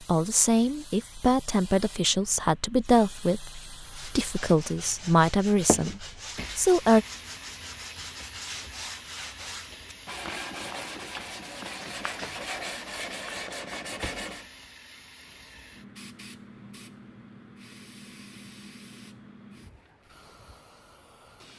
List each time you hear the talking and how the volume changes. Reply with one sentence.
You can hear the talking from 0.1 to 7.0 s, at a steady volume.